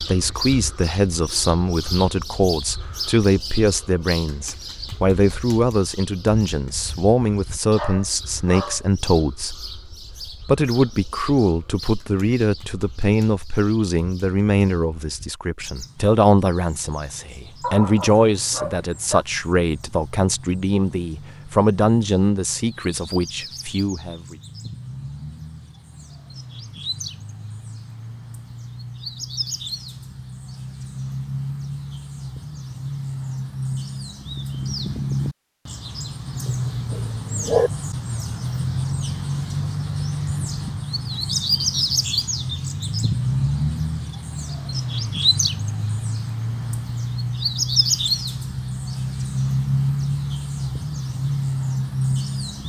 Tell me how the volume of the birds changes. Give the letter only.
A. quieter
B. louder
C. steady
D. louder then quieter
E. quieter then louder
E.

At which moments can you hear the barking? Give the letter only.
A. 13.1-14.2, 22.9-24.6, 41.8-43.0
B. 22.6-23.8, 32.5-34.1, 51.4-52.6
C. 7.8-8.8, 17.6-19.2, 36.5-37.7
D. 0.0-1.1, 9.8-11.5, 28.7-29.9
C.